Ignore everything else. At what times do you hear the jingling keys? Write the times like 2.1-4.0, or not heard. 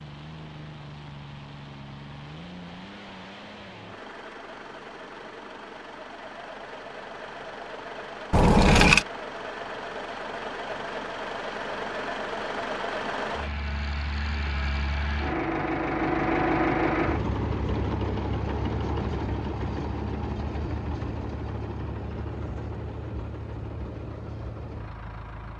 8.3-9.1.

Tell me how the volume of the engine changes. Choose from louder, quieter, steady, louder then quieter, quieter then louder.
louder then quieter.